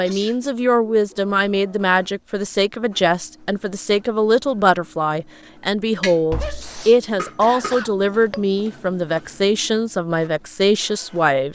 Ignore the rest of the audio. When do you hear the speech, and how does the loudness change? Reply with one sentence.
You can hear the speech from 0.0 to 11.5 s, at a steady volume.